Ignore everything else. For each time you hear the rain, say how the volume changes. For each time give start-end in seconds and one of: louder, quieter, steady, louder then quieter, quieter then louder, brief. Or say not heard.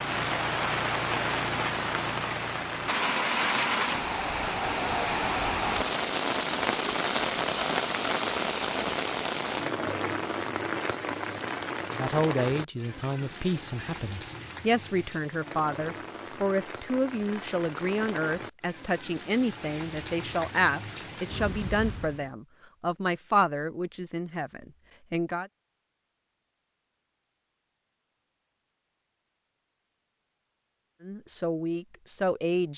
0.0-22.3 quieter.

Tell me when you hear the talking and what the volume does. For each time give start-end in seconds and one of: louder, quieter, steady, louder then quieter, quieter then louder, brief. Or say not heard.
11.9-25.5 steady
31.0-32.7 brief.